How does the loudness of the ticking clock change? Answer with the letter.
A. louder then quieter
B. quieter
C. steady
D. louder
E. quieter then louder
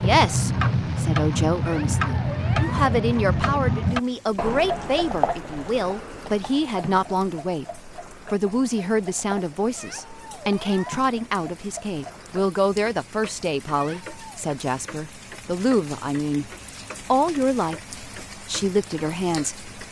B.